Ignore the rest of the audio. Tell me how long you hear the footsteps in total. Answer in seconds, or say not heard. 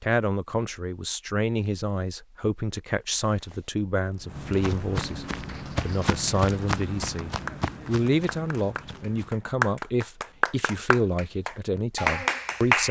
6 s.